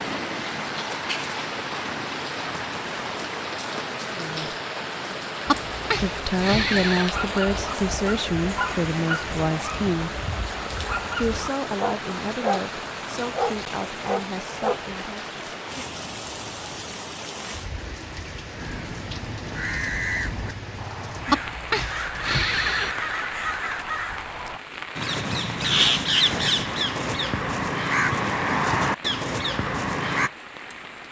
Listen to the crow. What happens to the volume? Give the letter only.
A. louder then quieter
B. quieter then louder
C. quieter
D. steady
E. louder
E.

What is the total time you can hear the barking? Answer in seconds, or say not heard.
8 s.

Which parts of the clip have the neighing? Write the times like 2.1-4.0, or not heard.
5.5-7.1, 21.2-22.9.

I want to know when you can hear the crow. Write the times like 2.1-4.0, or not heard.
18.6-30.3.